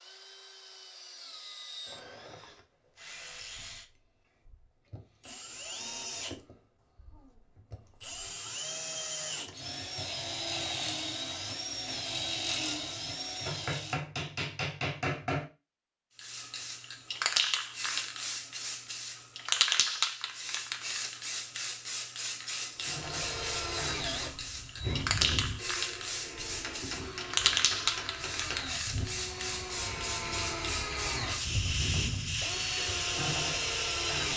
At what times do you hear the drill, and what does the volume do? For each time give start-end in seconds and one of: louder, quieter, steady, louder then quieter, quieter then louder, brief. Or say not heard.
0.0-14.0 louder
22.8-34.3 quieter then louder.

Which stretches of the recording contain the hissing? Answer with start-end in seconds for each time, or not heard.
16.1-34.3.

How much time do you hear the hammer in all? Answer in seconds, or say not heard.
4 s.